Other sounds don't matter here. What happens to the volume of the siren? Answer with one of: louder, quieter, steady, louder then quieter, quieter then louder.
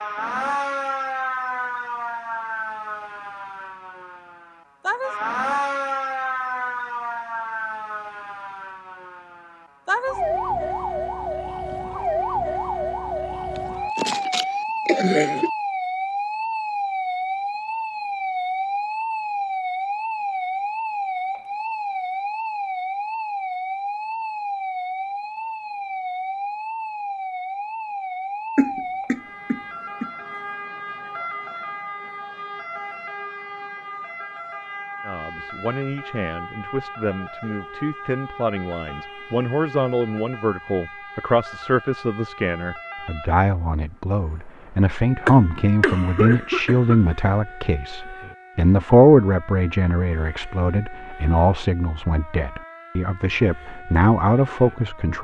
quieter.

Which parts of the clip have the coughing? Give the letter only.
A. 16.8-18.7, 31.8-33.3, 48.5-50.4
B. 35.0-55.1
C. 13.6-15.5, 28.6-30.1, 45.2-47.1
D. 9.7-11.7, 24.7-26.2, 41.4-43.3
C.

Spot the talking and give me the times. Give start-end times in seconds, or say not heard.
35.0-55.1.